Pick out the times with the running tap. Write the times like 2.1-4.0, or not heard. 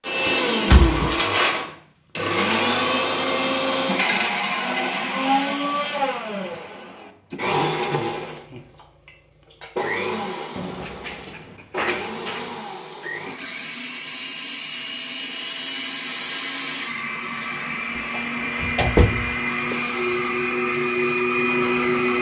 not heard.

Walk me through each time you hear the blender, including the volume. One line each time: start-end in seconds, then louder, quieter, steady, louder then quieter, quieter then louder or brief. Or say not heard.
0.0-22.1 quieter then louder.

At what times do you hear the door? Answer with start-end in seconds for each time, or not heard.
0.7-1.1, 10.6-12.5, 18.1-19.8.